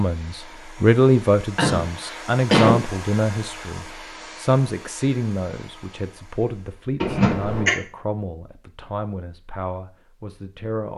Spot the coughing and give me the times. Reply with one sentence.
You can hear the coughing from 1.6 to 2.8 s and from 7.0 to 7.7 s.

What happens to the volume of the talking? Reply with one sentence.
The loudness of the talking goes down.